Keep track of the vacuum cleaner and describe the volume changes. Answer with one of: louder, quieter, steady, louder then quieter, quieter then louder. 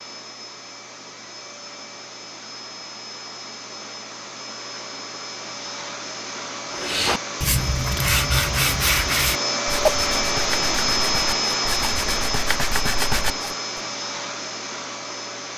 louder then quieter.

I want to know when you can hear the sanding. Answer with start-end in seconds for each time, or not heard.
6.7-13.5.